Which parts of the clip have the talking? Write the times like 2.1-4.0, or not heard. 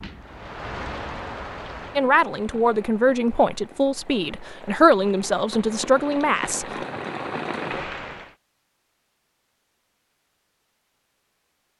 1.9-6.7.